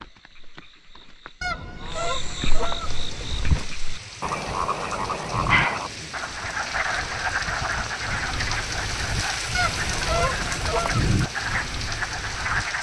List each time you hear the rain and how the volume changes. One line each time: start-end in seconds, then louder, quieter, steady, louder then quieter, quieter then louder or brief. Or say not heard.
2.8-12.7 louder.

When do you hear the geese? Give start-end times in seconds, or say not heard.
1.4-3.5, 9.5-11.1.